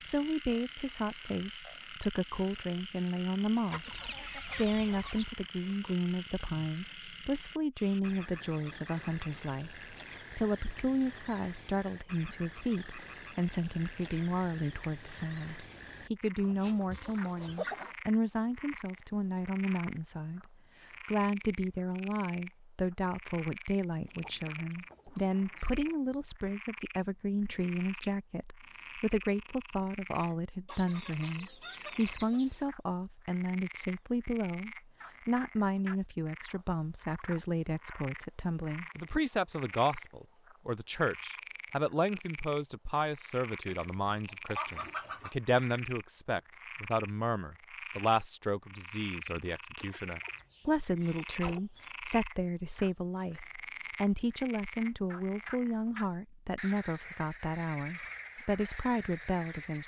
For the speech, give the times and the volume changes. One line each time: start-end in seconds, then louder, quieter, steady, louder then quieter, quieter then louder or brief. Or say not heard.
0.1-59.8 steady.